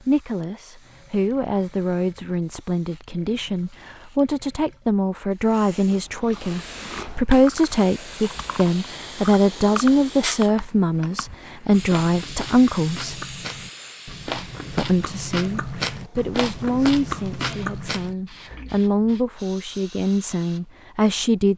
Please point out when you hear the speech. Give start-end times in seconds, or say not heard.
0.1-13.2, 14.8-21.5.